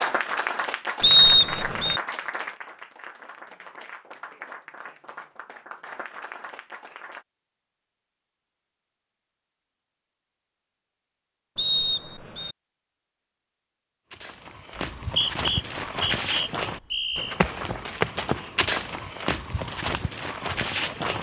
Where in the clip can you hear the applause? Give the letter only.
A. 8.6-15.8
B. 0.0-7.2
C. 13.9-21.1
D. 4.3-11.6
B.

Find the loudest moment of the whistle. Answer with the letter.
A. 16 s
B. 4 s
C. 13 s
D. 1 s
D.